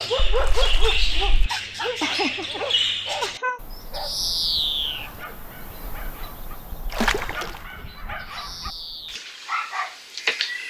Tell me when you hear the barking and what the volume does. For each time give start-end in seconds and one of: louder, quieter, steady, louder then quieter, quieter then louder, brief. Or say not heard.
0.0-10.6 quieter then louder.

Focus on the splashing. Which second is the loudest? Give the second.
7 s.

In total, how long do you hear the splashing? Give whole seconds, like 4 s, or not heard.
2 s.